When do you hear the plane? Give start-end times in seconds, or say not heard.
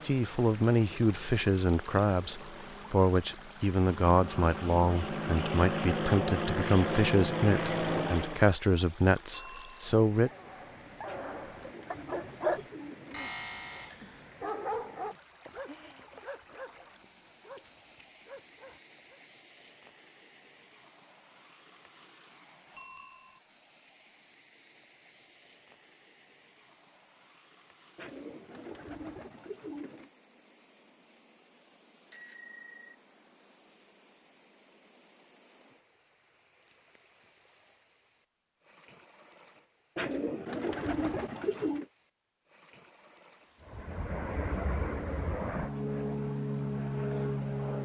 0.0-8.5, 43.6-47.8.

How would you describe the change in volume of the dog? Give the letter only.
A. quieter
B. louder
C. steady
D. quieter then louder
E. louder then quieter
E.